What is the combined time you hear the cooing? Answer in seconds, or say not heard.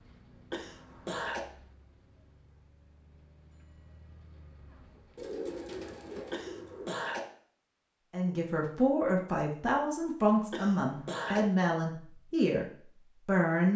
2 s.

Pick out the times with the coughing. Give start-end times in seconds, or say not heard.
0.5-1.4, 6.3-7.2, 10.5-11.4.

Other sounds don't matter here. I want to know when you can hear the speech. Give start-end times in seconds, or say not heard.
8.1-12.7, 13.2-13.7.